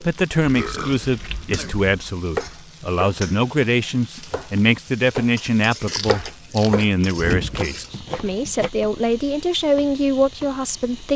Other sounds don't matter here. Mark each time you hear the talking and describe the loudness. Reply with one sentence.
The talking can be heard from 0.0 to 11.1 s, at a steady volume.